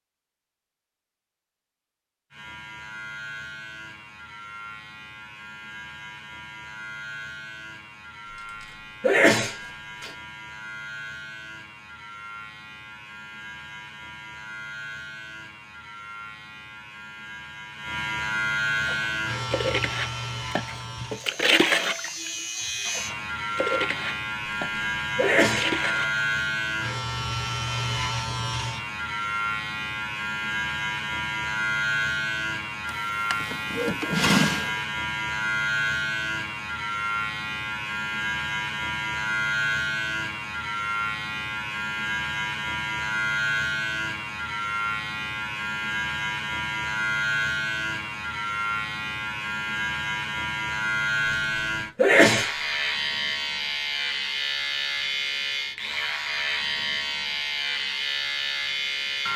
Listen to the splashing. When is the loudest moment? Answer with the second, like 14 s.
22 s.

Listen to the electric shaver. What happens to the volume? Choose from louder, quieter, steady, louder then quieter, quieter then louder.
louder.